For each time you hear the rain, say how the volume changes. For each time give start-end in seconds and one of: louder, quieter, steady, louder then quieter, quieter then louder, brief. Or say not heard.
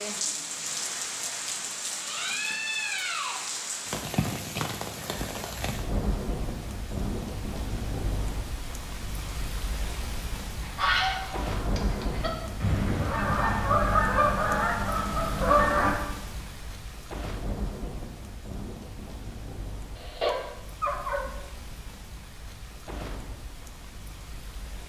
0.0-24.8 quieter.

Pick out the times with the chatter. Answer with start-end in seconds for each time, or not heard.
not heard.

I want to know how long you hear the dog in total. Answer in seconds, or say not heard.
2 s.